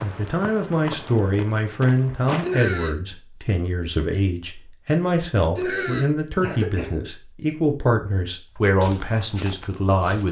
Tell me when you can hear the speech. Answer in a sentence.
The speech can be heard from 0.0 to 10.2 s.